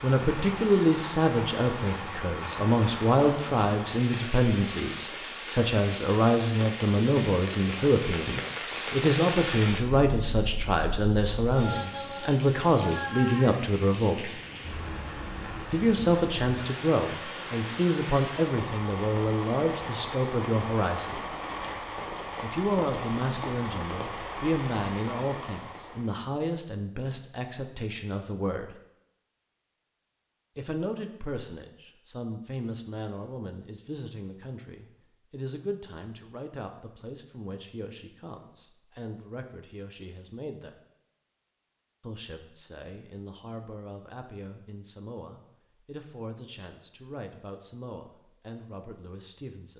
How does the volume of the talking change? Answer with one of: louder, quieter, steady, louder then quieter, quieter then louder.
quieter.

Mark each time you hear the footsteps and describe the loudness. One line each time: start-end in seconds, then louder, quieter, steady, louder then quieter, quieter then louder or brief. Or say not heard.
not heard.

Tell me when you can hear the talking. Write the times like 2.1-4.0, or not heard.
0.0-14.3, 15.7-21.2, 22.4-28.8, 30.6-40.8, 42.0-49.7.